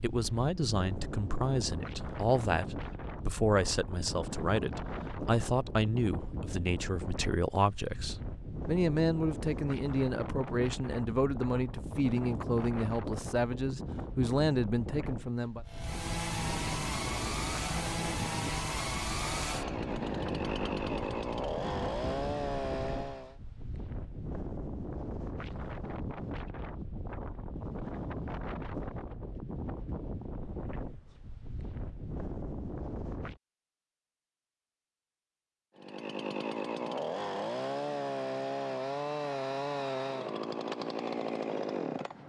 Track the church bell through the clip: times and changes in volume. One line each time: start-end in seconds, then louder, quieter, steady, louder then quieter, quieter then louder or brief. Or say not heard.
not heard.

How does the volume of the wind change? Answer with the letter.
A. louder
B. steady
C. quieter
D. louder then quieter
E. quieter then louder
B.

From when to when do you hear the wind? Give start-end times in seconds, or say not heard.
0.0-33.4.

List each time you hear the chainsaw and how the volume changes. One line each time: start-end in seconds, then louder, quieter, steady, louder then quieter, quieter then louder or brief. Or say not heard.
15.7-23.4 steady
35.8-42.2 steady.